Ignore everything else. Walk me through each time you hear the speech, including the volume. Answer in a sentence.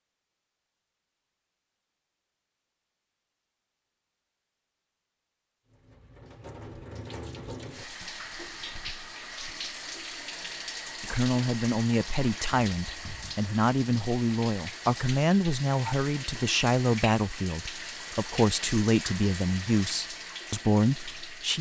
You can hear the speech from 11.0 to 21.5 s, at a steady volume.